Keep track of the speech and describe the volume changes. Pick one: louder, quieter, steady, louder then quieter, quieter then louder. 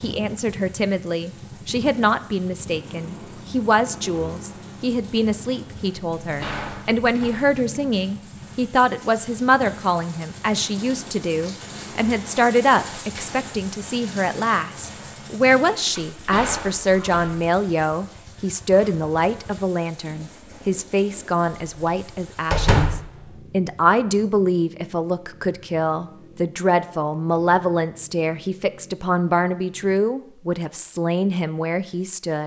steady.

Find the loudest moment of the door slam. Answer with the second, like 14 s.
23 s.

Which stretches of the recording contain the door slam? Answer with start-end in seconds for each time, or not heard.
6.2-7.5, 15.8-17.4, 22.5-23.1.